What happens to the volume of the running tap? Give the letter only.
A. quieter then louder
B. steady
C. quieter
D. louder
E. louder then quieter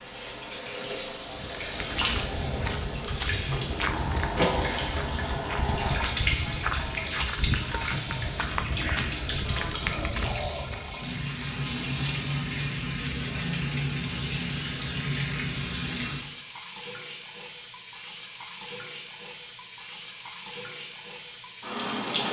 B.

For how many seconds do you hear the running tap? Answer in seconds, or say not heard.
22 s.